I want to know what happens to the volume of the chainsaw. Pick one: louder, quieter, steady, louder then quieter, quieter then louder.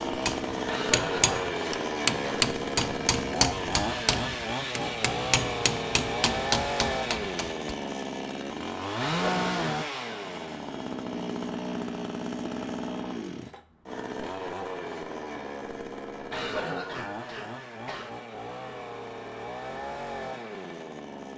quieter.